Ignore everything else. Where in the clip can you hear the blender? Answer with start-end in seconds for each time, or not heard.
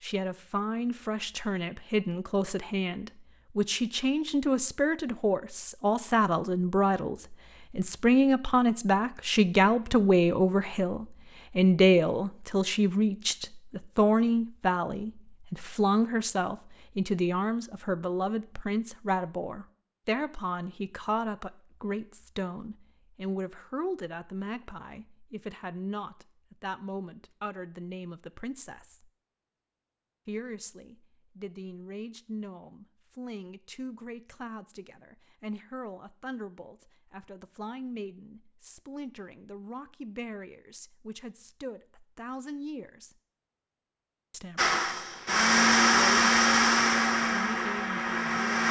44.5-48.6.